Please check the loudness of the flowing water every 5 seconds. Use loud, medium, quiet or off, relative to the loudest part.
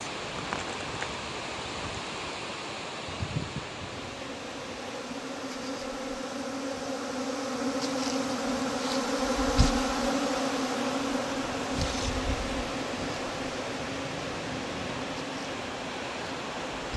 loud, medium, loud, loud.